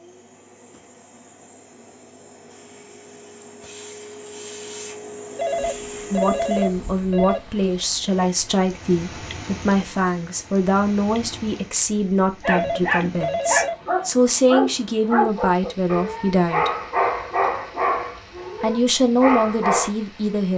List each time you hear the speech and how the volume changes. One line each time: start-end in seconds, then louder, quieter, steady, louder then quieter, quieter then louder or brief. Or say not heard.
6.1-16.7 steady
18.6-20.5 brief.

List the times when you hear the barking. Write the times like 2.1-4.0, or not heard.
12.4-19.9.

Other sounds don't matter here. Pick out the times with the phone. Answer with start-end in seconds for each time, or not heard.
5.3-7.4, 12.4-13.8.